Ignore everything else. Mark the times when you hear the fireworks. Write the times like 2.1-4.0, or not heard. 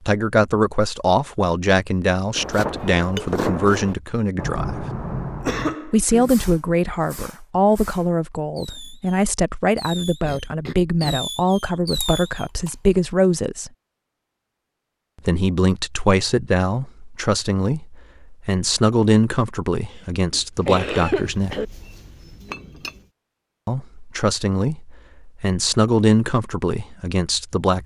2.4-12.4.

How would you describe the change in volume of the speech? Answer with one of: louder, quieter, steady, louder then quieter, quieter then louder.
steady.